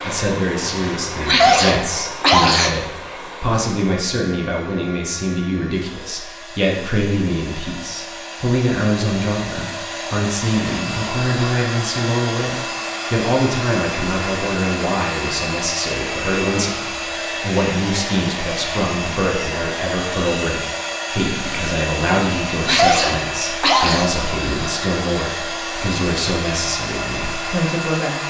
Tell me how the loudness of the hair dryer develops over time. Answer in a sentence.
The loudness of the hair dryer goes up.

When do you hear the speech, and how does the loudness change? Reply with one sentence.
The speech can be heard from 0.0 to 28.2 s, at a steady volume.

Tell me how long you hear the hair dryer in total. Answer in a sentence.
You can hear the hair dryer for 28 seconds altogether.